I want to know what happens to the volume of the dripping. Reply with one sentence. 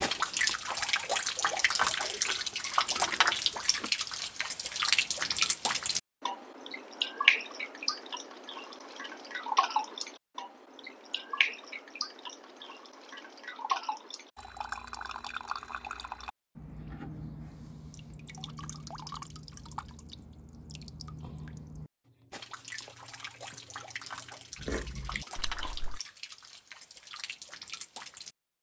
The volume of the dripping goes down.